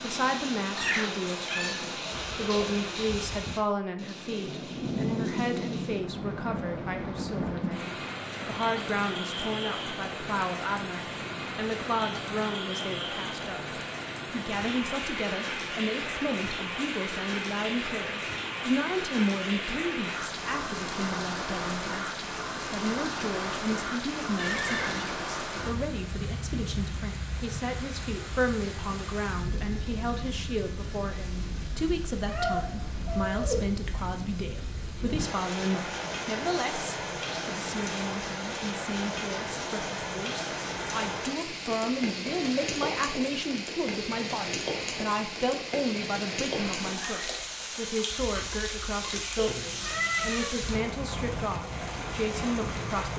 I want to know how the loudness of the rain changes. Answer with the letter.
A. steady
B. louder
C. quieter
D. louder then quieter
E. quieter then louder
A.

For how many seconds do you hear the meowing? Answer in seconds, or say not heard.
4 s.